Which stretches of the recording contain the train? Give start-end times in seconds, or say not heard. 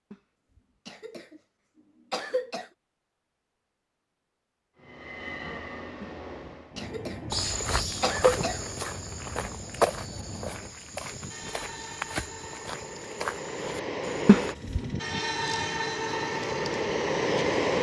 4.8-17.7.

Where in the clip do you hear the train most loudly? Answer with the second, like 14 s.
17 s.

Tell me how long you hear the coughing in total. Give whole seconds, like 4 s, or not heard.
3 s.